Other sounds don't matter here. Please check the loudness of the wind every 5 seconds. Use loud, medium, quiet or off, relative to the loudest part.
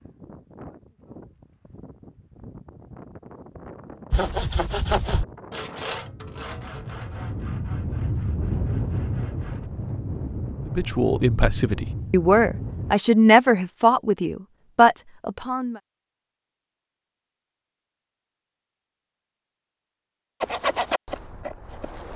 quiet, loud, loud, off, off.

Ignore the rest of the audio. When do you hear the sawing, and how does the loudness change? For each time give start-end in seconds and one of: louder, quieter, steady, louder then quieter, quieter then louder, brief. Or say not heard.
4.1-9.7 quieter
20.4-22.1 brief.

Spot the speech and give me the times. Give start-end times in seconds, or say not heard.
10.7-15.8.